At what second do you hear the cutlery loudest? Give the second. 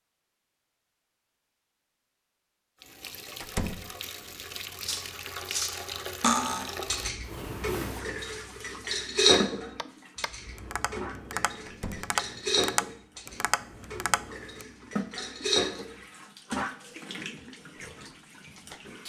9 s.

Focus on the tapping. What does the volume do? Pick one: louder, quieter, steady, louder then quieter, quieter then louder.
louder.